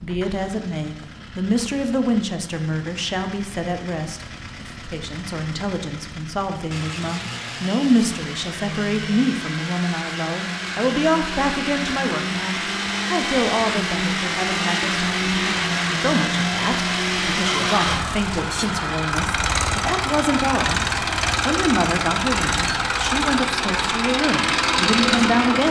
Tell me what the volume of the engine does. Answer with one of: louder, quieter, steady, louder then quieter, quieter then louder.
louder.